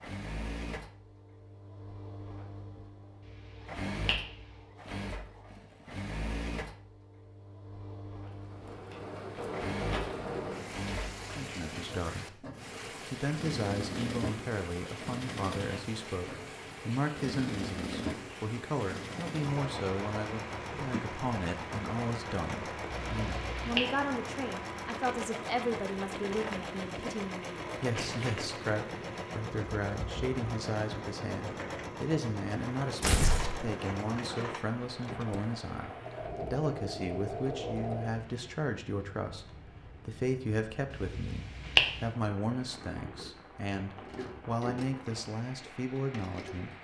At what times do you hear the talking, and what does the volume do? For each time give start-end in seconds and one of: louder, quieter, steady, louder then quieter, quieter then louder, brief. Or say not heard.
11.3-12.4 brief
13.1-46.7 steady.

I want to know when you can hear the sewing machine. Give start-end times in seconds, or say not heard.
0.0-38.2, 44.0-46.7.